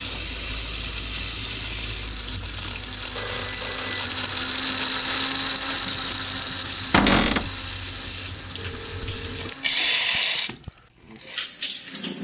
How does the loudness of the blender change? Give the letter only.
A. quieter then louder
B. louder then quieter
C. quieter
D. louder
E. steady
B.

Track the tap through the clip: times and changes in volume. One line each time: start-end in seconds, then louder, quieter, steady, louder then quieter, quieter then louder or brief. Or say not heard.
0.0-12.1 quieter then louder.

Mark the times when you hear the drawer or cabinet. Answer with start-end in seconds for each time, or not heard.
6.9-7.5.